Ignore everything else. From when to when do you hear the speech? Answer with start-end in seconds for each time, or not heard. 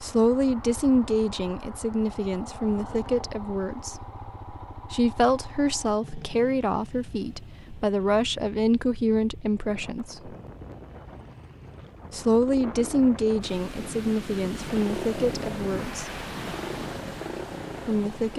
0.0-4.0, 4.9-10.3, 12.1-16.1, 17.9-18.3.